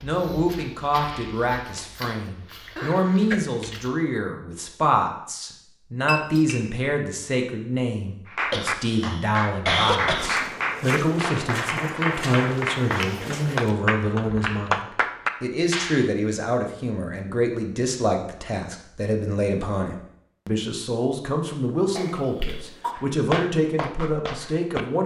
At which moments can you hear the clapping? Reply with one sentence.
You can hear the clapping from 8.2 to 16.1 s and from 22.9 to 24.9 s.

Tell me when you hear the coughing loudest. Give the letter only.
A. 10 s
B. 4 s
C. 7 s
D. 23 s
A.